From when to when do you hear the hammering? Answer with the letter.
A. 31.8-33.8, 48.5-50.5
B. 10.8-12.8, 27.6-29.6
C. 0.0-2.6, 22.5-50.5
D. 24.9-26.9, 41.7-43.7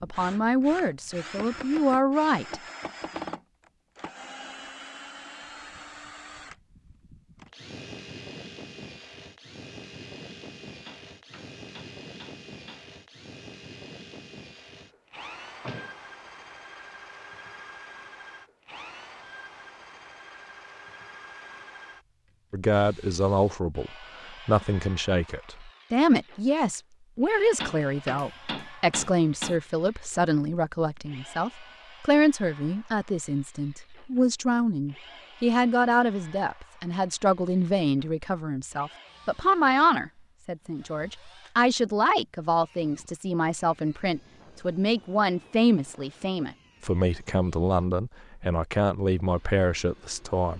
B.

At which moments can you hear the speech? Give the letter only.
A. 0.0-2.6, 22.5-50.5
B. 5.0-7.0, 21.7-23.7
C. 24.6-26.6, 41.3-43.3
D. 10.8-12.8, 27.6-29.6
A.